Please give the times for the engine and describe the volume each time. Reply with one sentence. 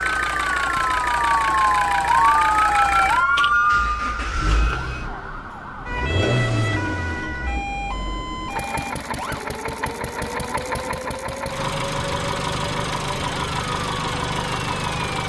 The engine can be heard from 0.0 to 15.2 s, getting quieter then louder.